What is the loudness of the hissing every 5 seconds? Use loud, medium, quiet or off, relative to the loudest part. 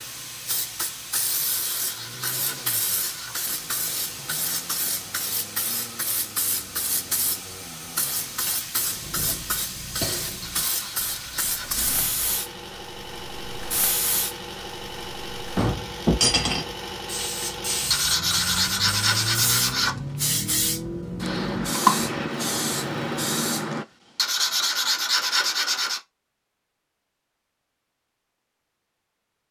medium, medium, medium, loud, loud, off.